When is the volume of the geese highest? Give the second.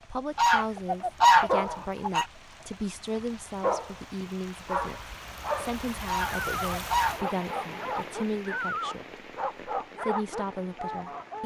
1 s.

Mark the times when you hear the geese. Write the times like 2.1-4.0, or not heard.
0.3-2.2, 6.0-7.5.